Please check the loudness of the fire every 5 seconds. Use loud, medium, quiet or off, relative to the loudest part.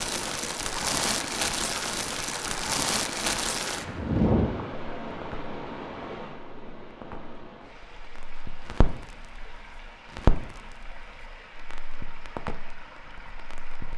loud, quiet, medium.